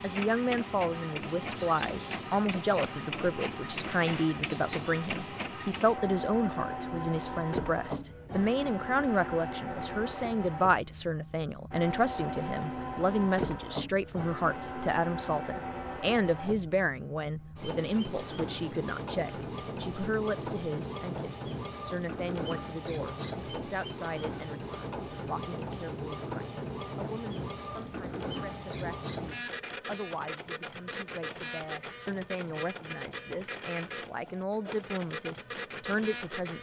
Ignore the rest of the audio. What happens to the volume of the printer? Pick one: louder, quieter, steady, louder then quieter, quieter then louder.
steady.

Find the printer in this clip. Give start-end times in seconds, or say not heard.
0.0-36.5.